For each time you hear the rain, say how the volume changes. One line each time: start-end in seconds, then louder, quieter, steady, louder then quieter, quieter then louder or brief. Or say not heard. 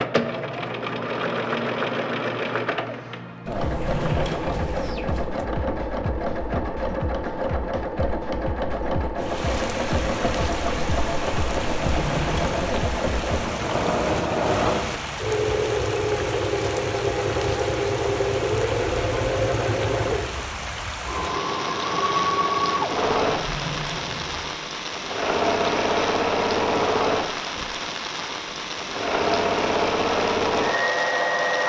9.2-31.6 steady.